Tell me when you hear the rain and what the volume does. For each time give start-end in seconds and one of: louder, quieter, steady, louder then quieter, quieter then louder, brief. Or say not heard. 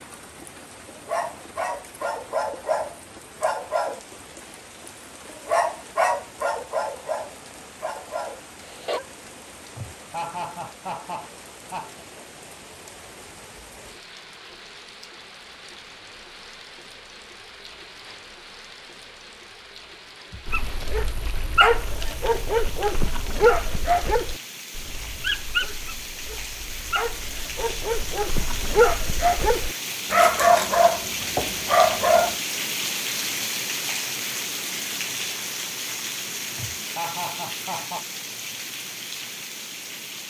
0.0-40.2 louder.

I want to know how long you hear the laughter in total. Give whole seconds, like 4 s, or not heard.
4 s.